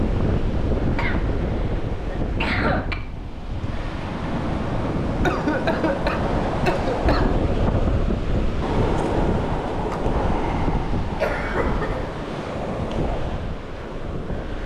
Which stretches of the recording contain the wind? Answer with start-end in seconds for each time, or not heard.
0.0-14.6.